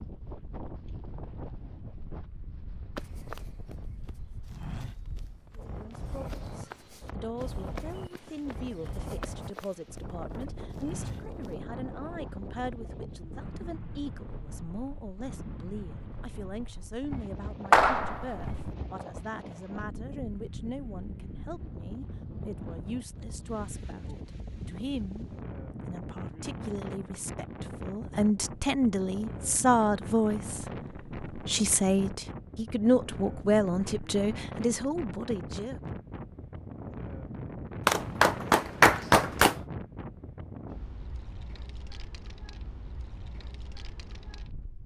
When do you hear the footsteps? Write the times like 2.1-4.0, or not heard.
3.0-11.5.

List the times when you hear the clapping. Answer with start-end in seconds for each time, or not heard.
17.7-18.6, 37.9-39.5.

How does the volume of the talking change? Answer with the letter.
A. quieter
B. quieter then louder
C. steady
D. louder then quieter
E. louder
E.